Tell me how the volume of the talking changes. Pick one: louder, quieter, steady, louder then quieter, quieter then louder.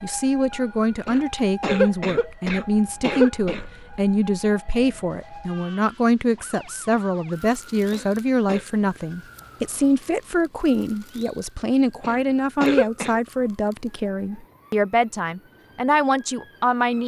steady.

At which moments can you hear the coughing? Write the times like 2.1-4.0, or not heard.
1.1-3.6, 7.9-8.7, 12.0-13.2.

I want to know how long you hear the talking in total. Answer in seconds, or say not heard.
17 s.